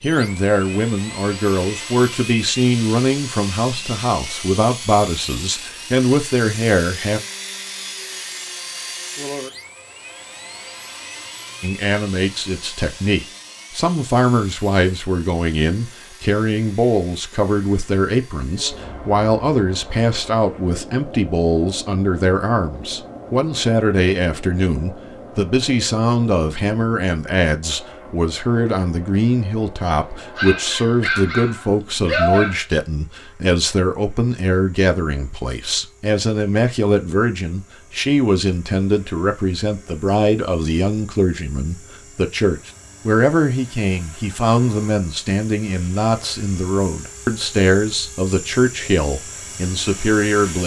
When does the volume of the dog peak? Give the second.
32 s.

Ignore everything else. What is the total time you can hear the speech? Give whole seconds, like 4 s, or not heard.
46 s.